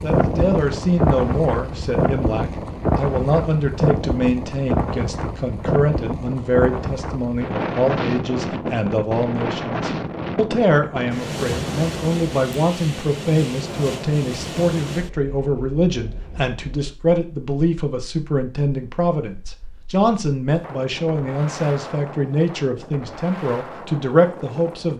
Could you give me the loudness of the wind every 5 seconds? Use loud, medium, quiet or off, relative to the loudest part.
loud, loud, medium, quiet, quiet.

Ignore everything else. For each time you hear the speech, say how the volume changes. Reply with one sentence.
The speech can be heard from 0.0 to 24.9 s, at a steady volume.